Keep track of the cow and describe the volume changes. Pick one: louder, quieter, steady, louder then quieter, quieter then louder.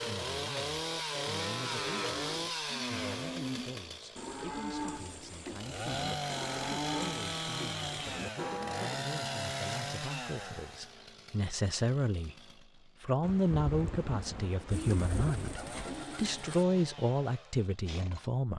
steady.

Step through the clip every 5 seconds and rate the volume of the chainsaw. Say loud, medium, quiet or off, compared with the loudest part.
loud, loud, medium, medium.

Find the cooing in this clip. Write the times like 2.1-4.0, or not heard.
14.7-16.6.